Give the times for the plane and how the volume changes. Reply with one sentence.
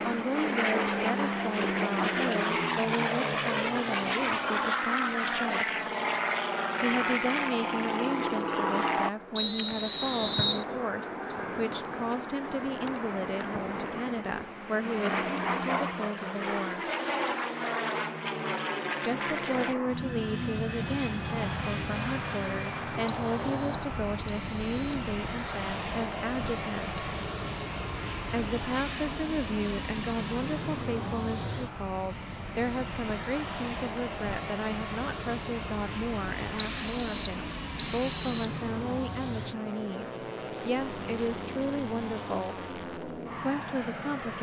You can hear the plane from 0.0 to 44.3 s, getting quieter.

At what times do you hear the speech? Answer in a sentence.
The speech can be heard from 0.1 to 5.8 s, from 6.8 to 16.9 s, from 19.0 to 27.0 s, from 28.3 to 42.5 s and from 43.4 to 44.3 s.